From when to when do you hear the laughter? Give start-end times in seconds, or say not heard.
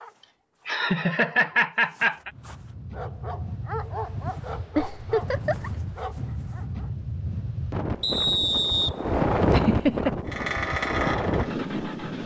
0.7-2.3, 4.8-5.7, 9.5-10.2.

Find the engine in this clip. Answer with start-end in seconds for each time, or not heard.
10.2-12.2.